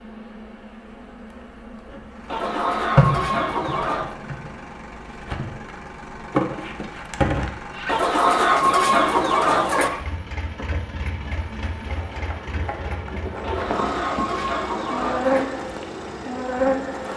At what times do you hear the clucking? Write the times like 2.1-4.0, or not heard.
2.3-4.2, 7.8-9.9, 13.4-15.4.